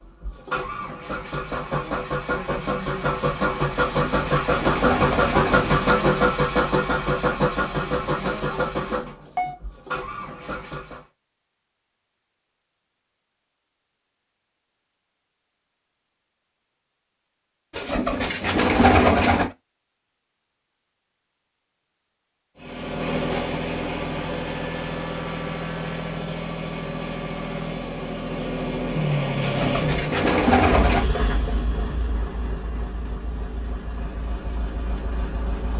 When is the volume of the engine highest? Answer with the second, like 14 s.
6 s.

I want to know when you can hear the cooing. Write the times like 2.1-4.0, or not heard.
4.0-5.7, 17.7-19.5, 29.4-31.1.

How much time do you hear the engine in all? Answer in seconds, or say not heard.
24 s.